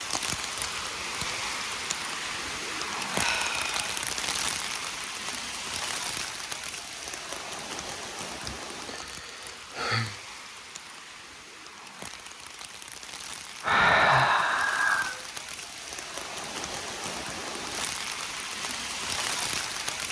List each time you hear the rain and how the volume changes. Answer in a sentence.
The rain can be heard from 0.0 to 20.0 s, getting quieter then louder.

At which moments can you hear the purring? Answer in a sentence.
The purring can't be heard in this clip.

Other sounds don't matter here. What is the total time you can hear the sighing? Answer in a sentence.
You can hear the sighing for 4 seconds altogether.